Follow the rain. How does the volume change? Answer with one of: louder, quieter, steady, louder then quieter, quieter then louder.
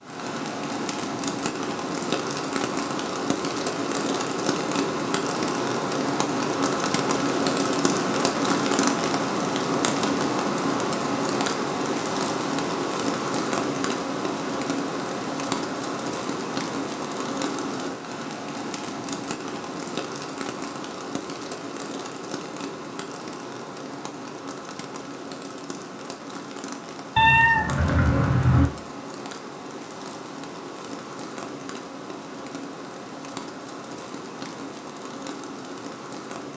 quieter.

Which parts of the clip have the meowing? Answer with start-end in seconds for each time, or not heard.
27.1-28.6.